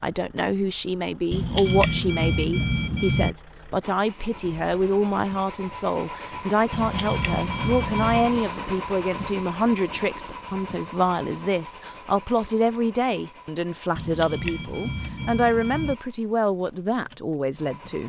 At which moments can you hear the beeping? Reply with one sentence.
You can hear the beeping from 1.3 to 3.4 s, from 6.7 to 8.4 s and from 13.9 to 15.9 s.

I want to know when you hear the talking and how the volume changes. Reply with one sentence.
The talking can be heard from 0.0 to 18.0 s, at a steady volume.